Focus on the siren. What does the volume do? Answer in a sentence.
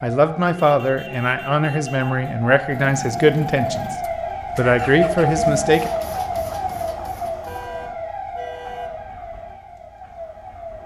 The volume of the siren goes up, then down.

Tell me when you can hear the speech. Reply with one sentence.
You can hear the speech from 0.0 to 4.0 s and from 4.5 to 5.9 s.